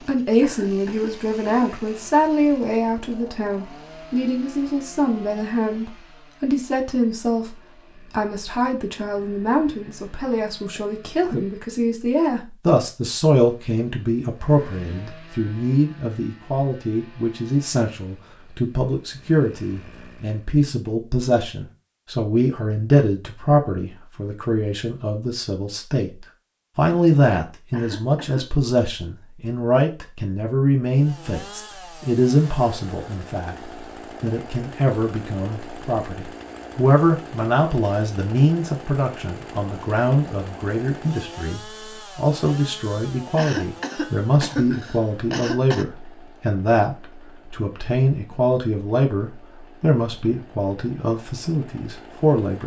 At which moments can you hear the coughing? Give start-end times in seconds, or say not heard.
0.4-1.7, 27.7-28.4, 43.4-45.9.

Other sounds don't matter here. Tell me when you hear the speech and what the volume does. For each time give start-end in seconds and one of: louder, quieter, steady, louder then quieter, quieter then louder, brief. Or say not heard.
0.1-52.6 steady.